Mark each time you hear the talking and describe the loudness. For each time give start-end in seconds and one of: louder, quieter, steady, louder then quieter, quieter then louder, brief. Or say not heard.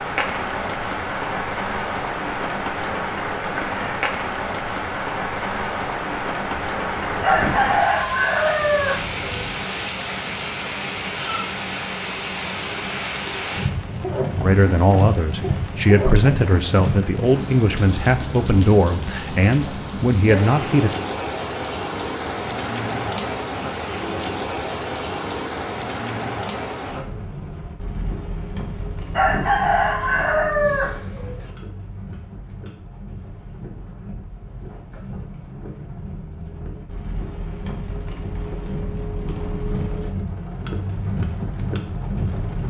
14.4-20.9 steady.